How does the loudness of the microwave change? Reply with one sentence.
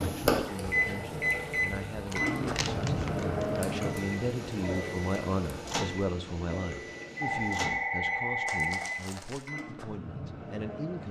The loudness of the microwave goes down.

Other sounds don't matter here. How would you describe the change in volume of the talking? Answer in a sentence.
The volume of the talking goes up, then down.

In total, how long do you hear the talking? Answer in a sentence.
You can hear the talking for 11 seconds altogether.